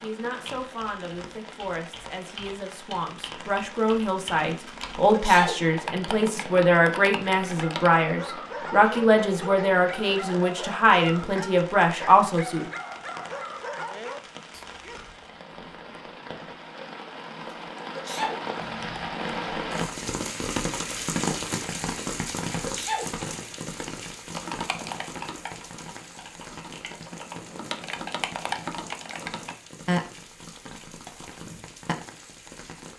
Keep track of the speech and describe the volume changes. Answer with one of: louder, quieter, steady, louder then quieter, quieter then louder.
louder.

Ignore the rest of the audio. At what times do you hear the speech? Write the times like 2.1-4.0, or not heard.
0.0-12.7.